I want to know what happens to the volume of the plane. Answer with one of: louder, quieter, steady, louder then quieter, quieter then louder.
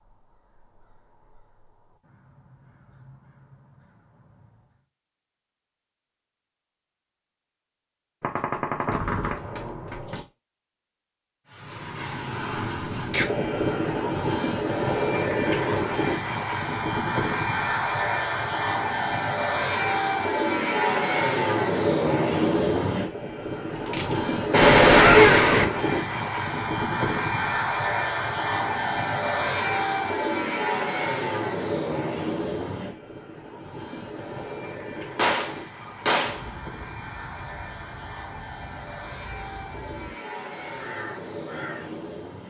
quieter.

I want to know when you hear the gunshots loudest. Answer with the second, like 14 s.
25 s.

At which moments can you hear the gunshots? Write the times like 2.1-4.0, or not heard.
8.2-10.2, 23.9-25.6, 35.1-36.5.